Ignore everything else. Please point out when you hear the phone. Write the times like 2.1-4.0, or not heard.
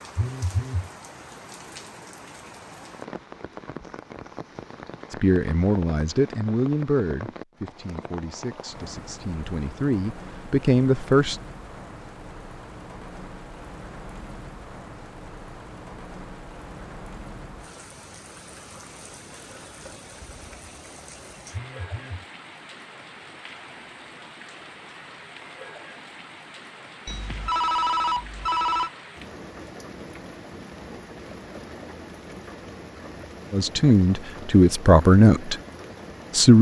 0.1-0.9, 21.5-22.2, 27.1-28.9.